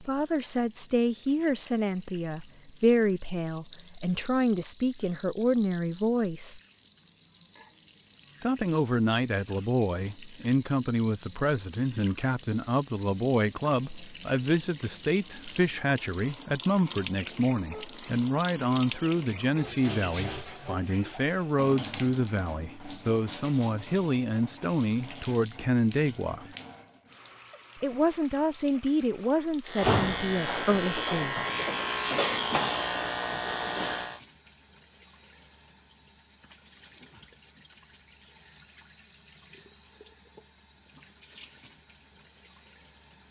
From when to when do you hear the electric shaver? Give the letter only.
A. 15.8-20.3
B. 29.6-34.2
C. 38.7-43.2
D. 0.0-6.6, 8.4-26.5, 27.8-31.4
B.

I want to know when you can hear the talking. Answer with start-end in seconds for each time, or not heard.
0.0-6.6, 8.4-26.5, 27.8-31.4.